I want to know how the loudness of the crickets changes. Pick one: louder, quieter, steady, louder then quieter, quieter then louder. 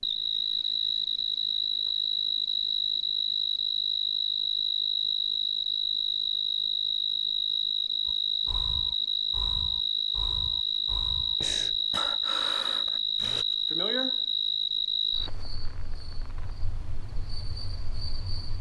quieter.